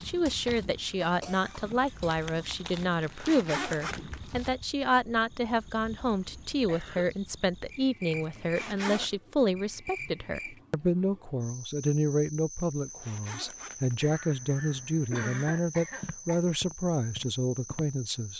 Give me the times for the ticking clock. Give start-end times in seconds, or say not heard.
not heard.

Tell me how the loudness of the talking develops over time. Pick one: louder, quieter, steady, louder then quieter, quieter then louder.
steady.